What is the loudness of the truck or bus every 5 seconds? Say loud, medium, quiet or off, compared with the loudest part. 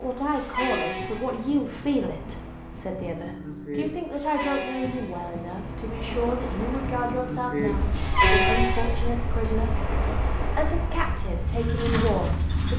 medium, loud, loud.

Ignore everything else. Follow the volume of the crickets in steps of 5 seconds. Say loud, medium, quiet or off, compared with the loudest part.
medium, loud, medium.